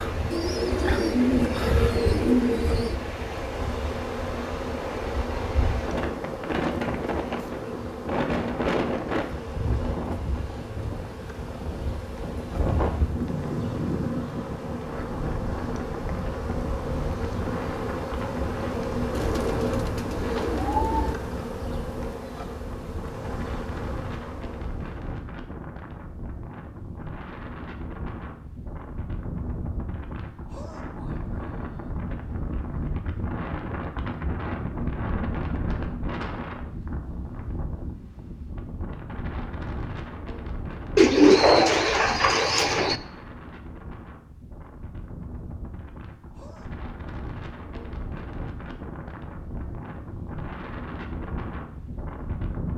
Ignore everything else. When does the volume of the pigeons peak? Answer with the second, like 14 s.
41 s.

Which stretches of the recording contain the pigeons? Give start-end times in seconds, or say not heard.
0.3-3.0, 19.1-21.1, 41.0-43.0.